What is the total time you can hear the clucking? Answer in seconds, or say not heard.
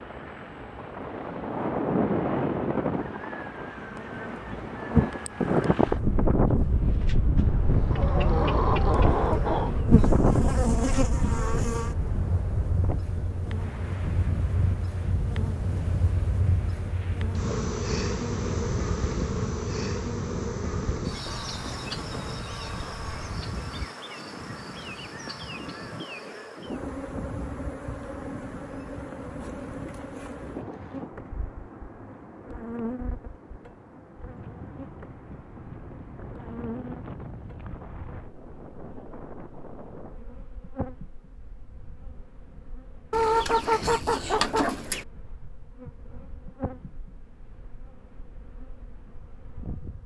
4 s.